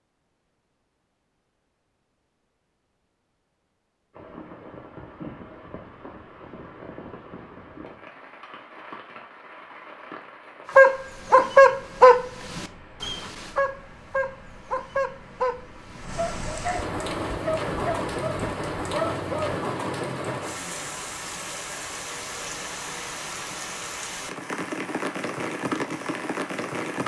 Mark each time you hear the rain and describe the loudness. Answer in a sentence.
The rain can be heard from 4.1 to 27.0 s, getting louder.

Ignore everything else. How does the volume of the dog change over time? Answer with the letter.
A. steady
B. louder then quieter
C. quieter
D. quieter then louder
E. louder
C.